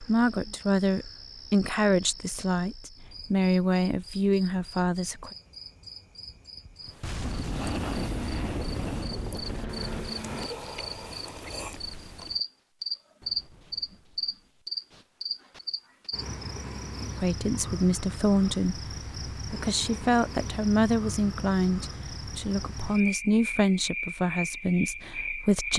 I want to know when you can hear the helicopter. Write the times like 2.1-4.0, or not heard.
8.1-10.5.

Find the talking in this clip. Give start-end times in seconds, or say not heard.
0.0-5.3, 17.1-25.7.